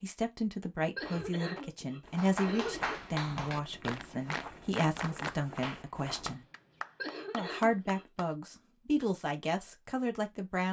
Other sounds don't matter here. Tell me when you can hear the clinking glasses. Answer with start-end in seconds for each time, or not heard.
not heard.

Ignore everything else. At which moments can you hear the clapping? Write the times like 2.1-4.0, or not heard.
2.1-8.3.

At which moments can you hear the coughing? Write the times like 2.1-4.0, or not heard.
0.9-3.0, 7.0-8.1.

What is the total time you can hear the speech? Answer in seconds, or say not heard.
10 s.